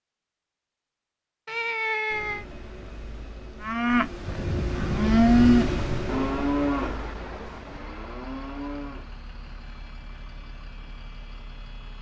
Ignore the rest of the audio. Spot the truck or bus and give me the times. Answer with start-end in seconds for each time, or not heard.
2.1-11.9.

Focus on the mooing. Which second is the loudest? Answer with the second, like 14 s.
5 s.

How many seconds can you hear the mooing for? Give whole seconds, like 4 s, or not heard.
5 s.